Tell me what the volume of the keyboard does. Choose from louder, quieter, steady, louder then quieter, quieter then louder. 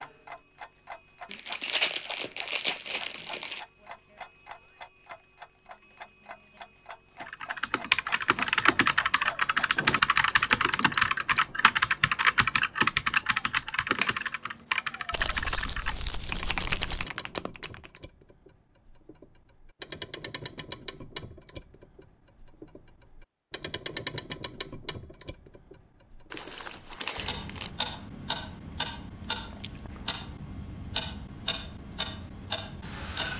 quieter.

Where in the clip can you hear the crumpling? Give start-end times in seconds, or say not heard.
1.3-3.6, 15.1-17.1, 26.3-27.7.